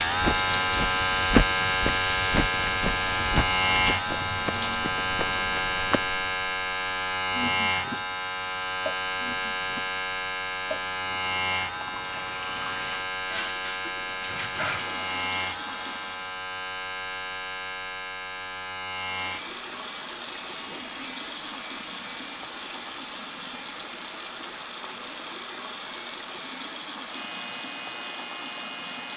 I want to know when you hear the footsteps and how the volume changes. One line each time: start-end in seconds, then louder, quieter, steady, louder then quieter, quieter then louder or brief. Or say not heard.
0.1-6.0 quieter.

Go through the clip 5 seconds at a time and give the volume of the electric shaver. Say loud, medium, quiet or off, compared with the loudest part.
loud, loud, medium, medium, quiet, quiet.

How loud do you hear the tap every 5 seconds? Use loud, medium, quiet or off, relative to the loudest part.
loud, medium, loud, loud, loud, loud.